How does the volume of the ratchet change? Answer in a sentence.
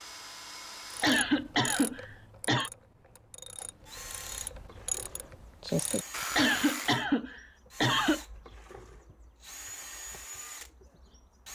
The loudness of the ratchet goes down, then up.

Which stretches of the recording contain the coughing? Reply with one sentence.
You can hear the coughing from 1.0 to 2.7 s and from 6.3 to 8.2 s.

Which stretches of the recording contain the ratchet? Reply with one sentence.
You can hear the ratchet from 0.9 to 7.0 s.